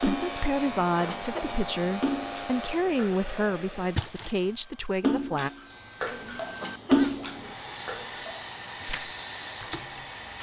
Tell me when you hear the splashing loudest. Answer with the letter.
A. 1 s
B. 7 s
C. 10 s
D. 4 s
B.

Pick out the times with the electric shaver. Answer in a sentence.
The electric shaver can be heard from 0.0 to 2.9 s and from 5.7 to 10.3 s.